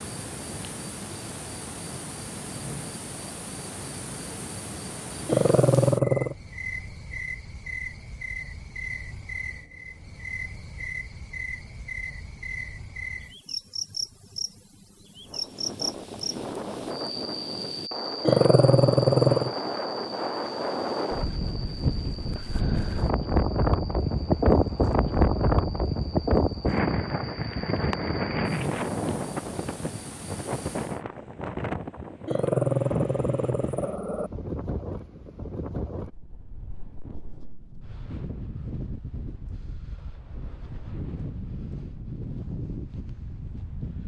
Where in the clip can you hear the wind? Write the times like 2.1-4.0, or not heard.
15.2-44.0.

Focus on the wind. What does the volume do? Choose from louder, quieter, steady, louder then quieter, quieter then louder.
louder then quieter.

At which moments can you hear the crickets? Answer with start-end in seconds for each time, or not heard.
0.0-31.0.